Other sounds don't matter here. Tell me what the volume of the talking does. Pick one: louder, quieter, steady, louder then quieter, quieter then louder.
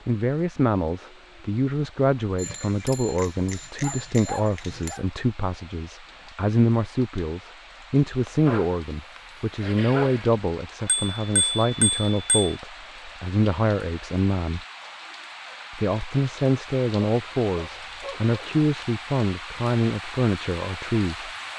steady.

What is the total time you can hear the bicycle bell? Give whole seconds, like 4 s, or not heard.
4 s.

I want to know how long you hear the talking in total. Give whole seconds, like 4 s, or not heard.
20 s.